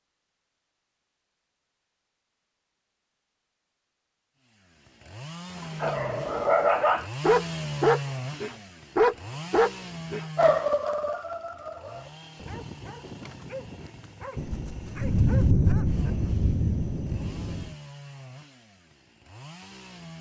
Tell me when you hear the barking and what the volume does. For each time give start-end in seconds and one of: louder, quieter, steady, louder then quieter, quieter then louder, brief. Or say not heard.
5.5-16.3 quieter.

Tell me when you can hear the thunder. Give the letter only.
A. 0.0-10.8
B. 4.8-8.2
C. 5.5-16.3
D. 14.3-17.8
D.